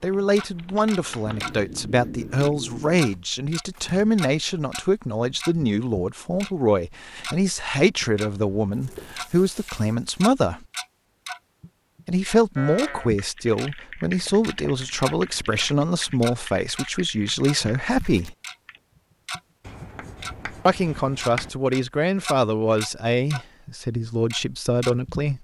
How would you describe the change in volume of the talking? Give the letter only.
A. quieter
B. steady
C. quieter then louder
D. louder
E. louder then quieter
B.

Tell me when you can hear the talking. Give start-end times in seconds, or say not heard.
0.0-10.7, 12.1-18.4, 20.6-25.3.